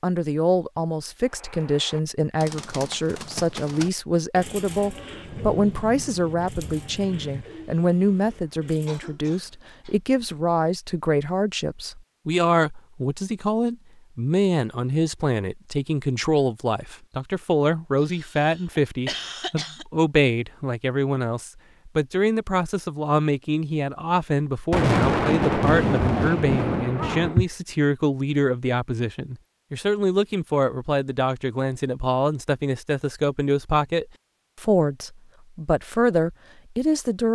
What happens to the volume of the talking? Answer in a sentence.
The volume of the talking stays about the same.